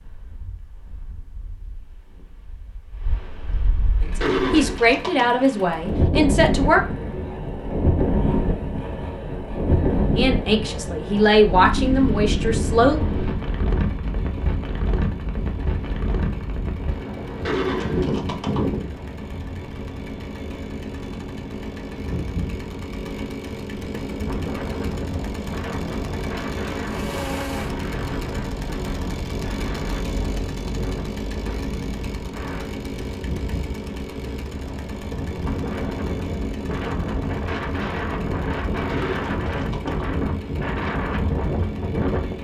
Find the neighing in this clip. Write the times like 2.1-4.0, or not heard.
4.2-5.3, 17.4-18.7, 38.9-40.1.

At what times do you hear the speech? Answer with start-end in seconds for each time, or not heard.
4.0-6.8, 10.2-13.0.